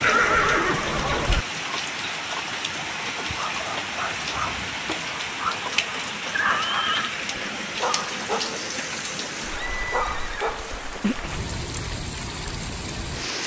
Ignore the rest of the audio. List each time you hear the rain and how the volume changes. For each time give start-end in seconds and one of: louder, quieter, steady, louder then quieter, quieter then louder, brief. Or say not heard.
0.0-13.4 steady.